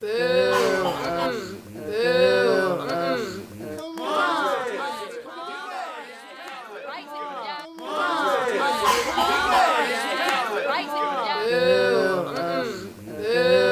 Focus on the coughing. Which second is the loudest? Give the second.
9 s.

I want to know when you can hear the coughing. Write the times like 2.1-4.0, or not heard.
0.5-1.3, 8.8-9.6.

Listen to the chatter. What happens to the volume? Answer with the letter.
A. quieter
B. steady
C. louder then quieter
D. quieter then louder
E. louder
D.